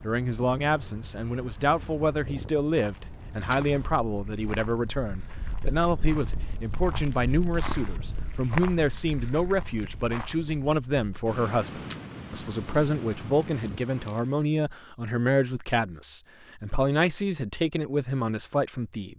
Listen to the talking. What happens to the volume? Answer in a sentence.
The loudness of the talking stays about the same.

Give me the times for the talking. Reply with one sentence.
The talking can be heard from 0.0 to 19.1 s.